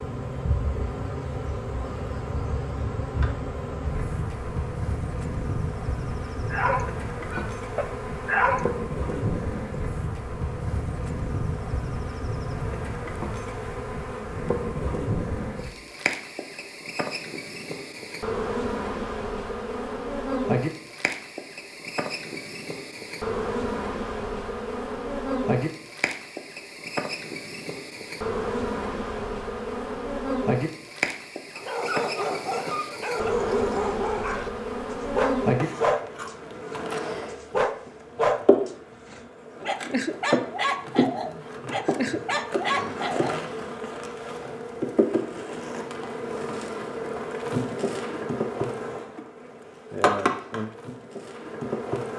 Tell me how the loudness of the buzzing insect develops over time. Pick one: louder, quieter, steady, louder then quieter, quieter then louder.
steady.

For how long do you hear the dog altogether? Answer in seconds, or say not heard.
14 s.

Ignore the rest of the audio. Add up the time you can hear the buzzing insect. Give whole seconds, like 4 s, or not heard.
52 s.